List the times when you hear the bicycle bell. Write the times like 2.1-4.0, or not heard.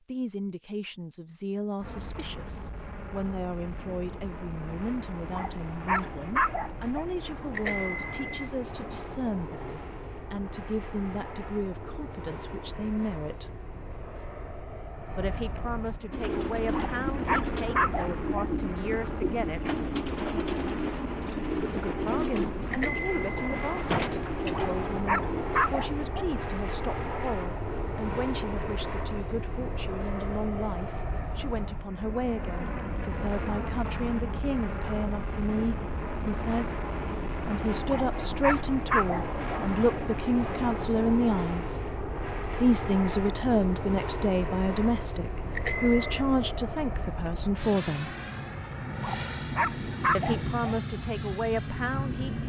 7.5-8.4, 22.7-23.9, 45.5-46.2.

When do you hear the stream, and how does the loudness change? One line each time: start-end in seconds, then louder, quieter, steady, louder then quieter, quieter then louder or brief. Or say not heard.
not heard.